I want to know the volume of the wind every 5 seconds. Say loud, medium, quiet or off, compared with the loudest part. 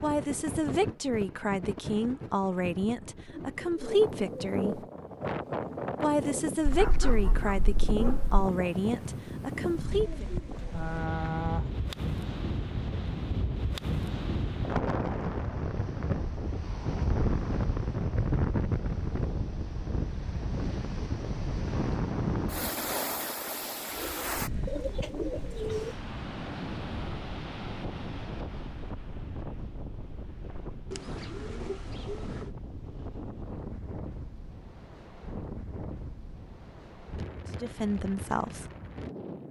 medium, loud, loud, loud, loud, medium, medium, medium.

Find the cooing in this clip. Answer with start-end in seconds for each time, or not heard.
3.3-4.8, 9.9-11.8, 24.4-25.9, 30.9-32.5.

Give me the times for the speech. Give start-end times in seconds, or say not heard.
0.0-4.8, 6.0-10.2, 37.6-38.6.